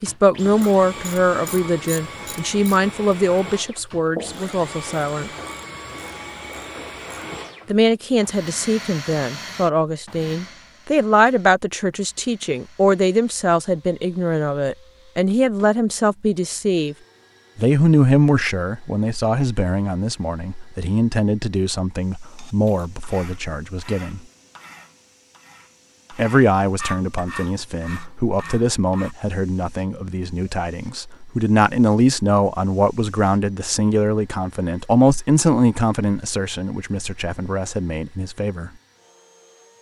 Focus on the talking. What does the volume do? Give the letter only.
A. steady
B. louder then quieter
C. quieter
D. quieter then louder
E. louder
A.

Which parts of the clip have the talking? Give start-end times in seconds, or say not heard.
0.0-5.3, 7.7-16.9, 17.6-24.2, 26.1-38.7.